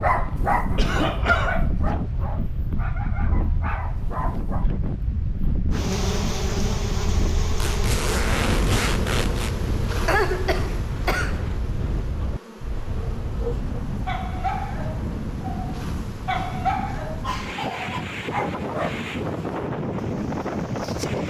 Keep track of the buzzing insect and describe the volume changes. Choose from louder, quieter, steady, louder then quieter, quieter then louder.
quieter.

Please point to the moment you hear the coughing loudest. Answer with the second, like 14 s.
10 s.